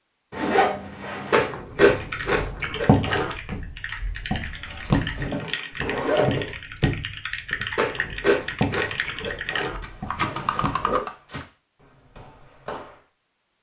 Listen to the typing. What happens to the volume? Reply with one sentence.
The loudness of the typing goes up.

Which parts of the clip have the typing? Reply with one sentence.
You can hear the typing from 2.0 to 11.4 s.